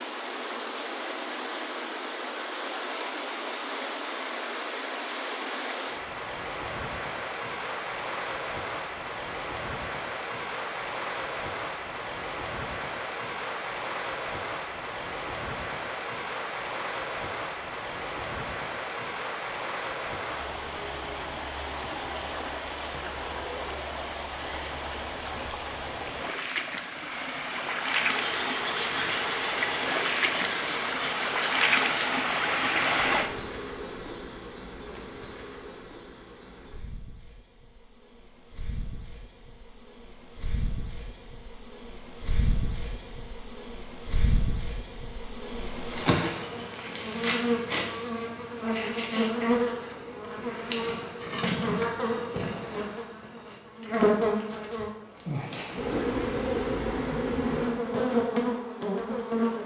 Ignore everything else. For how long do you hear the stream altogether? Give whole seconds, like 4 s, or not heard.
33 s.